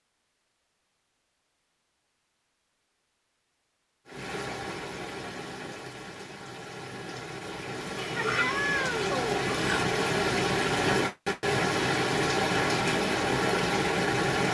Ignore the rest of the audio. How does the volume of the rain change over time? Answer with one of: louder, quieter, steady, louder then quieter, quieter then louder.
louder.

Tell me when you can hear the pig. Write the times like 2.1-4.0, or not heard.
8.0-9.8.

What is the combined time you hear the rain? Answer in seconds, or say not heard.
10 s.